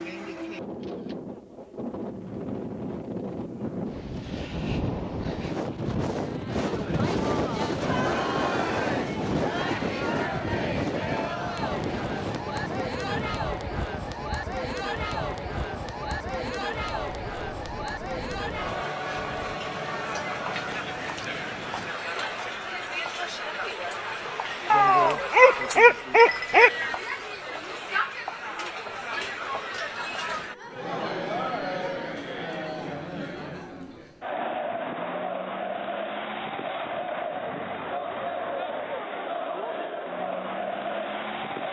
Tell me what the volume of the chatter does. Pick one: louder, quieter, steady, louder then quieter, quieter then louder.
steady.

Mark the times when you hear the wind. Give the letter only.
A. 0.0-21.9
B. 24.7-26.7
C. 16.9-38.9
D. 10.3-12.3
A.